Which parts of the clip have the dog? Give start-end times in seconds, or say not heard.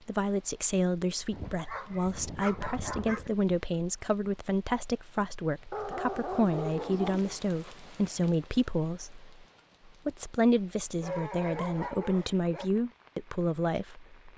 1.3-3.3, 5.7-7.3, 11.0-12.7.